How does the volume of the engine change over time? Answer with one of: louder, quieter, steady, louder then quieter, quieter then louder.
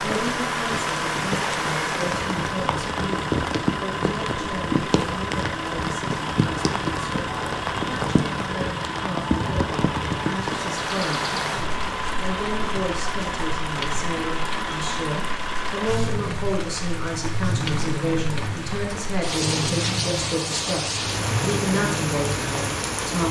steady.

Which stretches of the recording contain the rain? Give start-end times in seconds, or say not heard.
0.0-23.2.